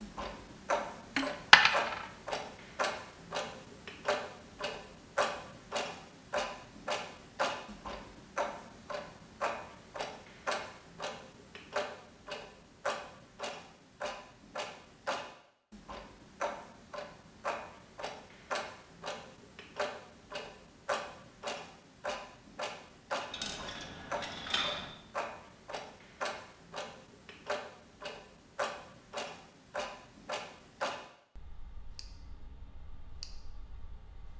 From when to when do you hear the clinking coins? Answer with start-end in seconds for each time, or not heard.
1.1-2.0, 23.3-24.9.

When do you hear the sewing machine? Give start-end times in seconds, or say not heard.
not heard.